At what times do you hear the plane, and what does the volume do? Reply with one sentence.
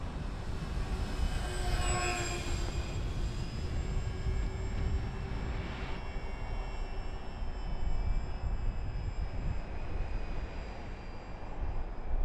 The plane can be heard from 0.0 to 12.2 s, getting quieter.